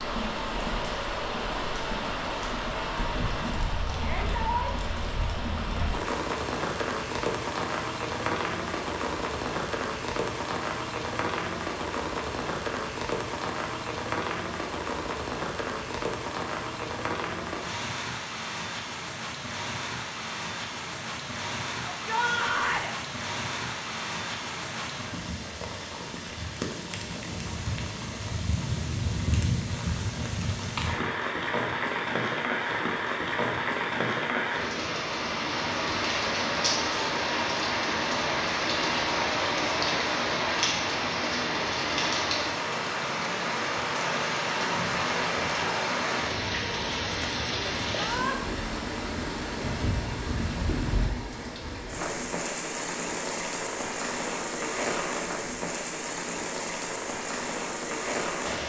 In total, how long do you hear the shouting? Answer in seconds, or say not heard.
2 s.